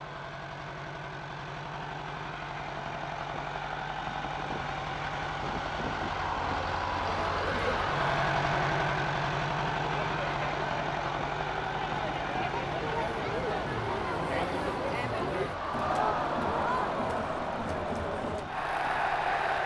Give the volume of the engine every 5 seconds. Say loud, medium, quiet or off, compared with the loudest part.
medium, loud, loud, medium.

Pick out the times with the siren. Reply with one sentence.
You can't hear the siren here.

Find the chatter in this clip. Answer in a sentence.
You can hear the chatter from 6.9 to 19.6 s.